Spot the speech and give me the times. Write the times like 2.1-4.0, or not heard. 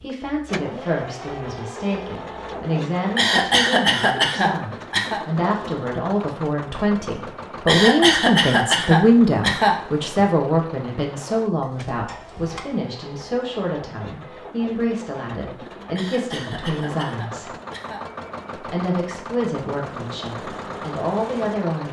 0.0-17.5, 18.6-21.8.